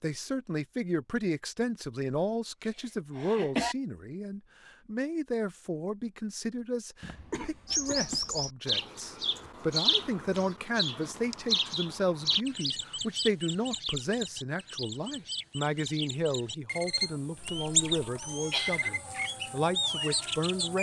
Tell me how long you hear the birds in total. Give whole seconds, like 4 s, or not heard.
13 s.